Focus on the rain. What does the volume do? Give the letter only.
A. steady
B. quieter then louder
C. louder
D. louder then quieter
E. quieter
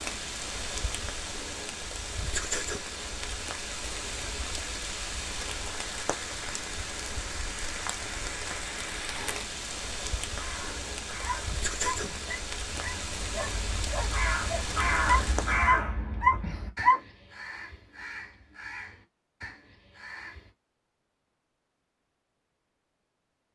A.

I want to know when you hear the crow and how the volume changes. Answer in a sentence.
You can hear the crow from 10.2 to 20.5 s, getting louder then quieter.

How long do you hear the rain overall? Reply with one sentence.
You can hear the rain for 16 seconds altogether.